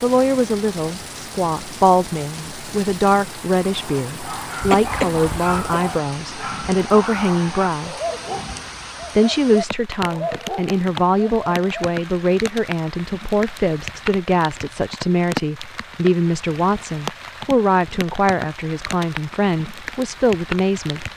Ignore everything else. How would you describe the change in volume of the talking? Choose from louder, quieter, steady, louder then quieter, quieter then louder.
steady.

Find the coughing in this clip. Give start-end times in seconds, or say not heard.
4.6-5.8.